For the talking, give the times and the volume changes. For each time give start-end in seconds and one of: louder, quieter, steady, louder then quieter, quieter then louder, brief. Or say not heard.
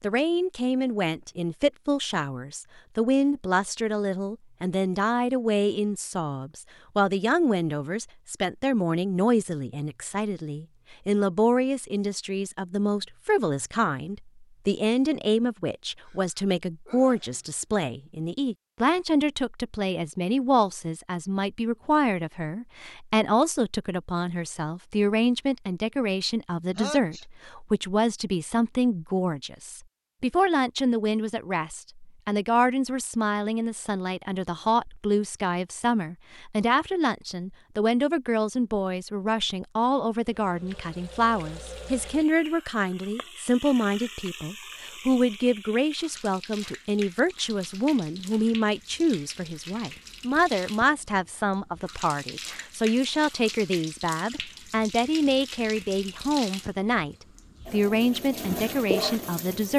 0.0-59.7 steady.